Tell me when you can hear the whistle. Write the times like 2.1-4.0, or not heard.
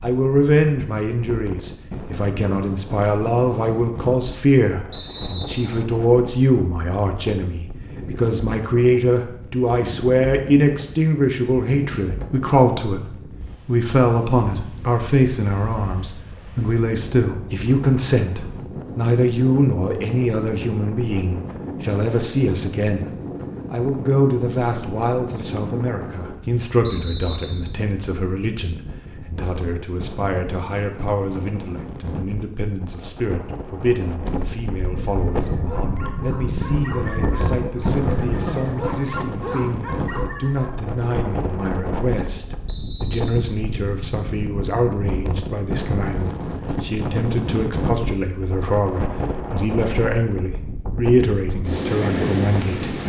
4.9-5.8, 26.8-27.7, 42.6-43.3.